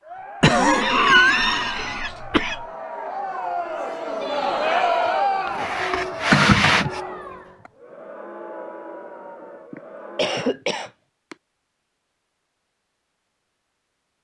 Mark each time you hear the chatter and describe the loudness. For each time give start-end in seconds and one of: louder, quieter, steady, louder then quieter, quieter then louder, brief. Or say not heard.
0.0-10.6 louder then quieter.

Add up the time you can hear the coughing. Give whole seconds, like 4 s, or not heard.
6 s.